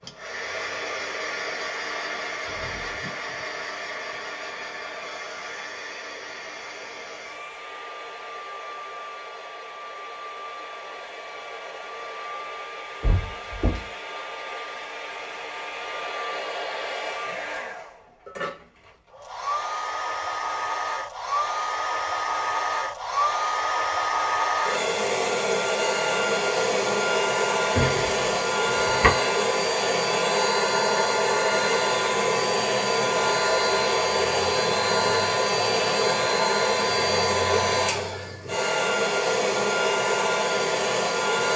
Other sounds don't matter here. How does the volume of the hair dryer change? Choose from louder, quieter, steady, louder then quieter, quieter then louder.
louder.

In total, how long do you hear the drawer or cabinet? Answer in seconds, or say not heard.
2 s.